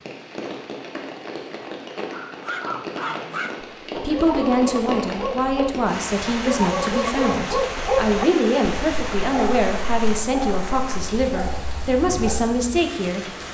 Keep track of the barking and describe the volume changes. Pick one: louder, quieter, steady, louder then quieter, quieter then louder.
louder then quieter.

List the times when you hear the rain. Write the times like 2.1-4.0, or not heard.
0.0-13.4.